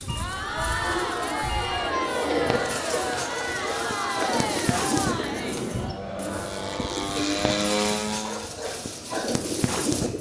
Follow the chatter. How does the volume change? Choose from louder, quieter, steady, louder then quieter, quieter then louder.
quieter.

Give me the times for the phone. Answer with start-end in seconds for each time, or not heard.
0.1-1.9, 7.2-8.1.